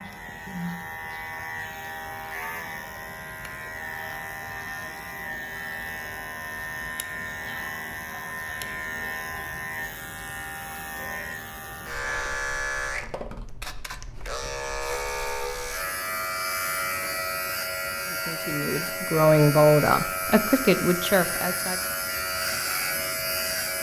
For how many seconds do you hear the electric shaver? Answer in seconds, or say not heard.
24 s.